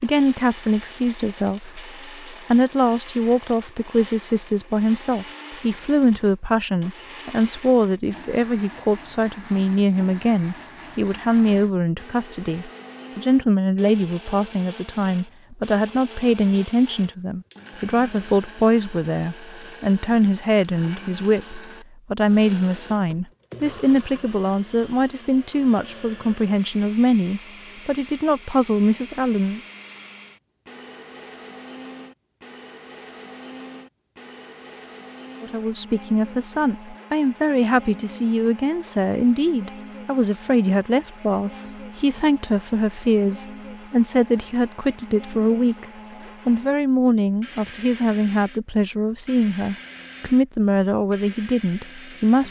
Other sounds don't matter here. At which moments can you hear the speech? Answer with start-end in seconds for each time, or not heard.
0.0-29.6, 35.4-45.9, 46.5-52.4.